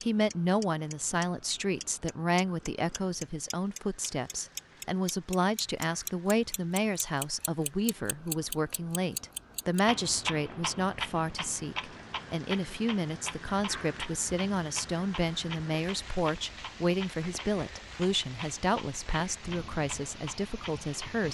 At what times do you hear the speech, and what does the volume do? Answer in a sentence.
The speech can be heard from 0.0 to 21.2 s, at a steady volume.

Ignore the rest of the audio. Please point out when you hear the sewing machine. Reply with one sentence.
The sewing machine can't be heard in this clip.